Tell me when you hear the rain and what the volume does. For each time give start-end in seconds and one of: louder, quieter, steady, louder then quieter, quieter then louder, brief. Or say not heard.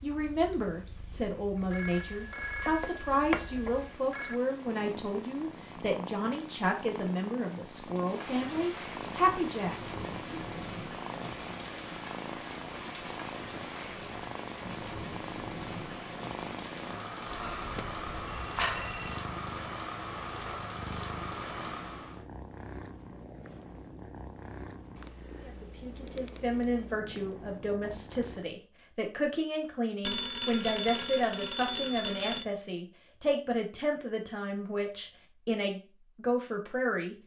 0.0-22.2 louder.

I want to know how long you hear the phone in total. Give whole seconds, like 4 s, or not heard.
7 s.